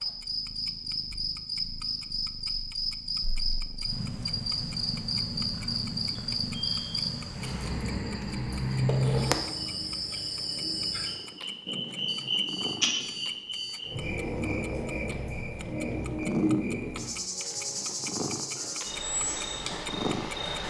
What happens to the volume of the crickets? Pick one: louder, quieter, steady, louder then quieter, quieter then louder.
steady.